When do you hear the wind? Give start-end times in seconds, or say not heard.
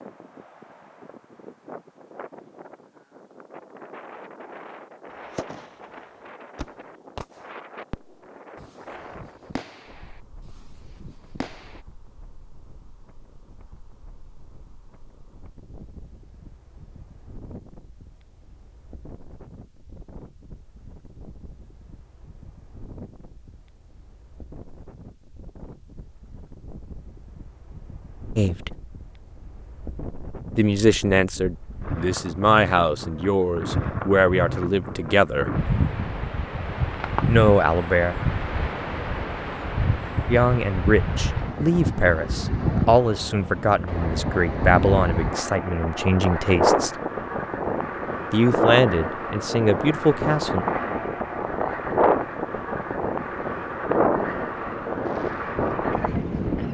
0.0-56.6.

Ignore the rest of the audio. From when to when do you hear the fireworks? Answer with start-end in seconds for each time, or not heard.
5.3-11.8, 55.0-56.6.